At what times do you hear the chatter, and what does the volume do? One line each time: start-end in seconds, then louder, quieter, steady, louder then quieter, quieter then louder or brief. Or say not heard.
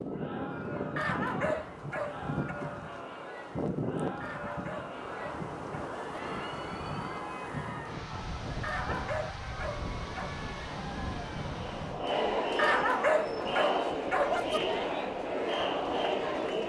0.0-16.6 louder.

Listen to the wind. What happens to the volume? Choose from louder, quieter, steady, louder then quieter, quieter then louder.
quieter.